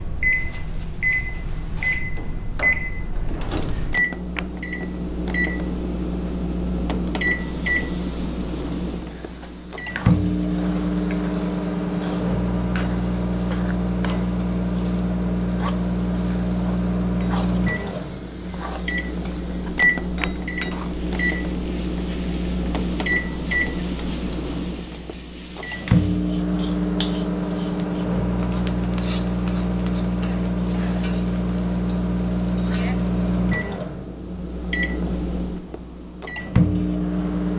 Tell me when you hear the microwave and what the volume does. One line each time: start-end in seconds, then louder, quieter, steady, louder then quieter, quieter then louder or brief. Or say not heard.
0.0-37.5 steady.